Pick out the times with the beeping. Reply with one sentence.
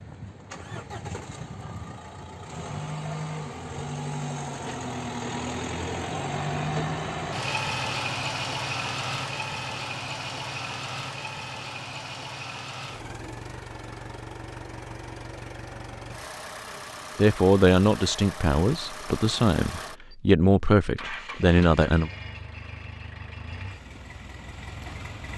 The beeping can't be heard in this clip.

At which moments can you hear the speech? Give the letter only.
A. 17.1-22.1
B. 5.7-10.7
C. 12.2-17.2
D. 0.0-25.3
A.